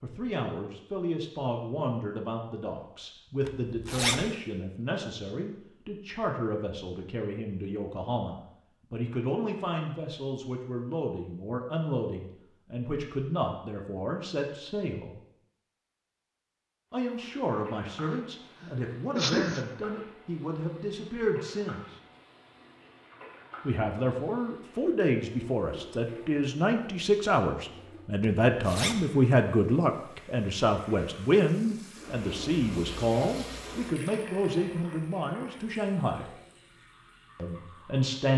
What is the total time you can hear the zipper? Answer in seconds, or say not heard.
2 s.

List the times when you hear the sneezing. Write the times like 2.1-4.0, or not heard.
18.1-19.6.